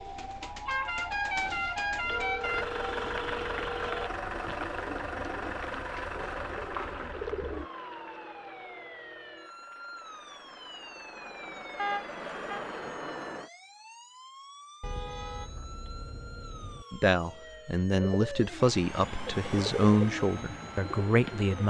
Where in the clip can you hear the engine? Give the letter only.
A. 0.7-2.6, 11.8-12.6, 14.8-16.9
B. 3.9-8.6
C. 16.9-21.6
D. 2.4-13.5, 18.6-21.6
D.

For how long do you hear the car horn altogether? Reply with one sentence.
The car horn can be heard for 5 seconds in total.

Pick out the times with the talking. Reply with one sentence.
The talking can be heard from 16.9 to 21.6 s.